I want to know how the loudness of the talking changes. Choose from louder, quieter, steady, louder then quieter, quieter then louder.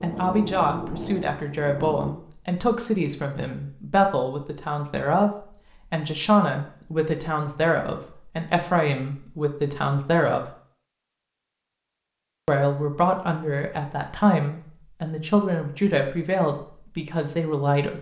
steady.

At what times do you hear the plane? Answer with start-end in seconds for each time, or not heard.
0.0-2.1.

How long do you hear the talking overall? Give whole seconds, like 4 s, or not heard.
16 s.